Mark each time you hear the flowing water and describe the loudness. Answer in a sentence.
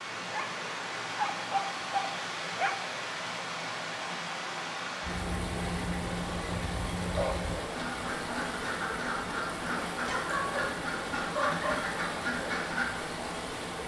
You can hear the flowing water from 0.0 to 13.8 s, at a steady volume.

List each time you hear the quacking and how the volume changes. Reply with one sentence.
You can hear the quacking from 5.0 to 12.8 s, at a steady volume.